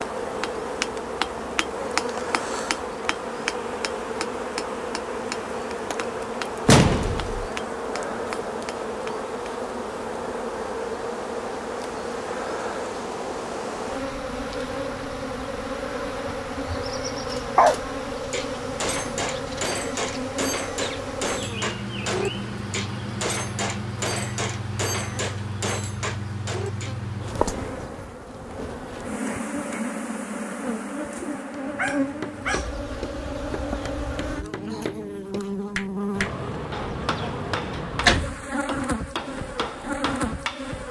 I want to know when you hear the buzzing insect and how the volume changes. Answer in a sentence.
The buzzing insect can be heard from 0.0 to 40.8 s, at a steady volume.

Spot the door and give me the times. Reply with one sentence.
You can hear the door from 6.7 to 7.5 s and from 37.7 to 38.4 s.